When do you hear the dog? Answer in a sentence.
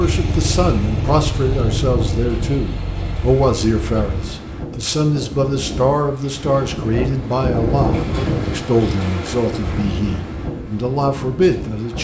You can't hear the dog here.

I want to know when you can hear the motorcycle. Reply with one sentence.
You can hear the motorcycle from 0.0 to 4.3 s.